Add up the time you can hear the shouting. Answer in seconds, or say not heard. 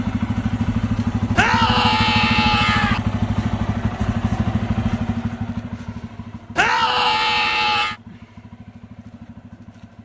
3 s.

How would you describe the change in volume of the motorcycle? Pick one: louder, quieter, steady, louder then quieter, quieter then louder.
quieter.